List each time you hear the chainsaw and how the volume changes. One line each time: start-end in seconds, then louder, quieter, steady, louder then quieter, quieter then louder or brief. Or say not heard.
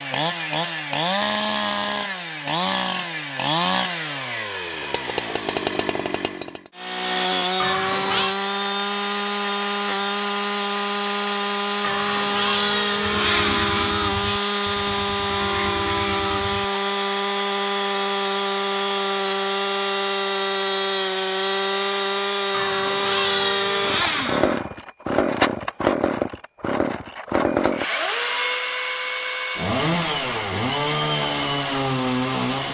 0.0-32.6 steady.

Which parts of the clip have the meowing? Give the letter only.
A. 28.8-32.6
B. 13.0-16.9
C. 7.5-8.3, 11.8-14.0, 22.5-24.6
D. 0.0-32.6
C.